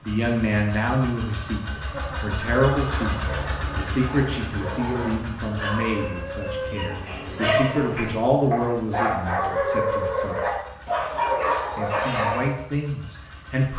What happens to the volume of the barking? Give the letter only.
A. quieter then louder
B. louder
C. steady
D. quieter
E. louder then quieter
B.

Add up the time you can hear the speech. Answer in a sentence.
The speech can be heard for 12 seconds in total.